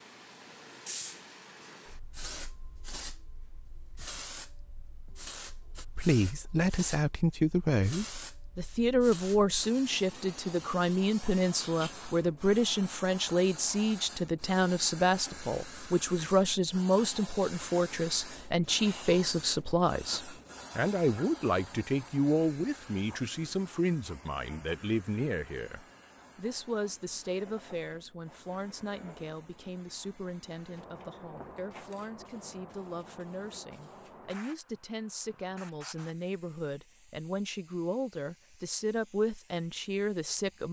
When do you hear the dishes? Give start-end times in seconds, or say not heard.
not heard.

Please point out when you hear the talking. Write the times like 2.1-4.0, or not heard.
6.0-40.6.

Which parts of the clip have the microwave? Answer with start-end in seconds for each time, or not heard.
not heard.